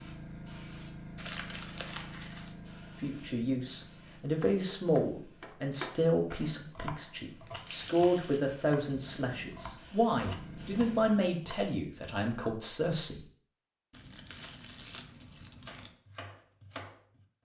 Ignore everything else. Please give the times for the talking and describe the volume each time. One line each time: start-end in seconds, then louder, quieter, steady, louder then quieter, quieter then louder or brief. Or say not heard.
3.0-13.2 steady.